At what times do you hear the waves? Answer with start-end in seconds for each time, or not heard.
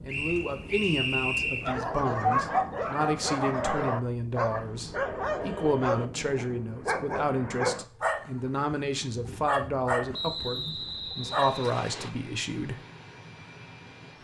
not heard.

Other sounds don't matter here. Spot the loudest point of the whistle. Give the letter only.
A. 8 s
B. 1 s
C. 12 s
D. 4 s
B.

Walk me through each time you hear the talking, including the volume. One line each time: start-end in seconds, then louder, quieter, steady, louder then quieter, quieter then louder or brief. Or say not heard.
0.0-12.8 steady.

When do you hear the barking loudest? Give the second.
2 s.